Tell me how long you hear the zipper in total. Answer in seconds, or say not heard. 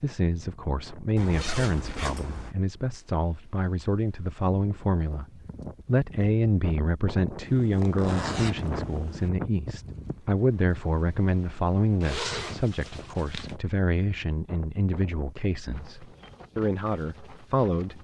5 s.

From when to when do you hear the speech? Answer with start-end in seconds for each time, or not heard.
0.0-5.2, 5.8-18.0.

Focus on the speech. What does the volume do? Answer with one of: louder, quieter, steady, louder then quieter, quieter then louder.
steady.